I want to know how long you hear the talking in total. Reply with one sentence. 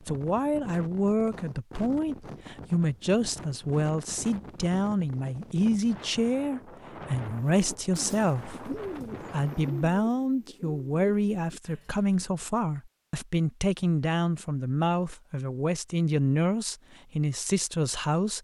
The talking can be heard for 18 seconds in total.